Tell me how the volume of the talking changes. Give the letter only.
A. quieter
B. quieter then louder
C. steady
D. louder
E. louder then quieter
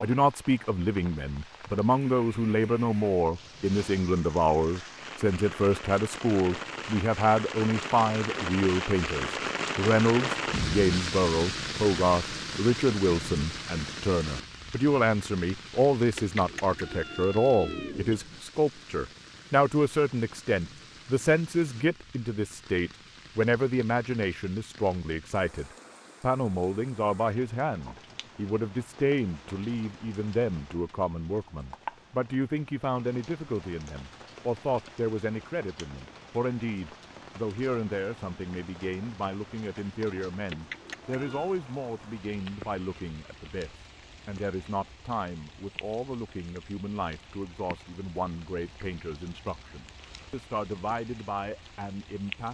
A.